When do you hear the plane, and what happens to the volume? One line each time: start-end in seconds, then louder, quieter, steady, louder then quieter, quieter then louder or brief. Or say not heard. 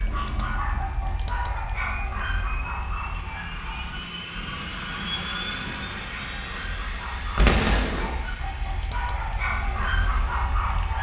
0.0-10.9 louder then quieter.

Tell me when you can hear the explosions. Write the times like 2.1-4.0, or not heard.
7.3-8.2.